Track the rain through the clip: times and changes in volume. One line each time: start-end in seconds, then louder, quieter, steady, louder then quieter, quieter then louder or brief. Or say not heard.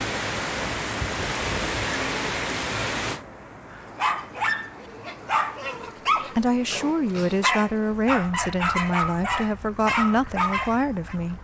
0.0-11.3 quieter.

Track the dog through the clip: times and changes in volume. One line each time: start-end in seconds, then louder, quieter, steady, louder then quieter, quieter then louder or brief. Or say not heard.
3.7-11.2 steady.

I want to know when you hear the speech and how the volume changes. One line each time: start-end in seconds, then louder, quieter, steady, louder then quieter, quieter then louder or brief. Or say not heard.
6.3-11.3 steady.